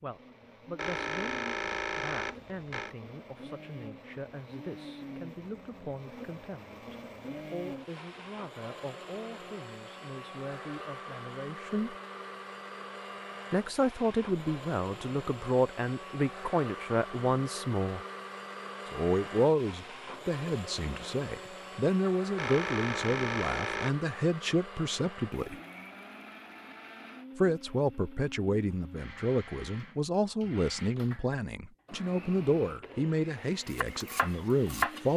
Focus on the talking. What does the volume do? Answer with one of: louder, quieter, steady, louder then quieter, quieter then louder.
louder.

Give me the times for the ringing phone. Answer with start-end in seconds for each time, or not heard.
0.8-3.0, 22.4-24.0.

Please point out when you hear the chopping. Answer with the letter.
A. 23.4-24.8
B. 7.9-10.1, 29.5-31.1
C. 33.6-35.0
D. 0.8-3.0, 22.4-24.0
C.